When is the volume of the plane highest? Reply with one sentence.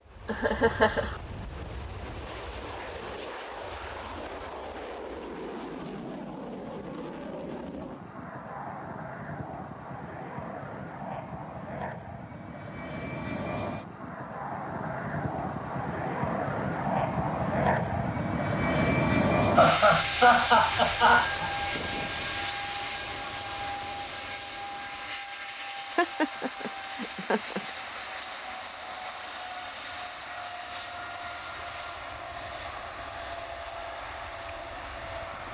The loudest moment of the plane is at 19 seconds.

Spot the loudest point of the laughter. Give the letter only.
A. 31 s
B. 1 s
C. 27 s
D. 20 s
D.